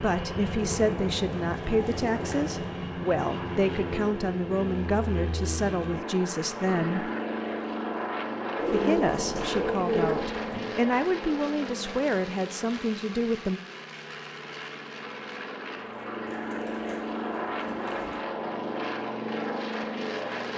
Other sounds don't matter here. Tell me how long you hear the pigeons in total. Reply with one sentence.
You can hear the pigeons for 6 seconds altogether.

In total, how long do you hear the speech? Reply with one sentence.
The speech can be heard for 12 seconds in total.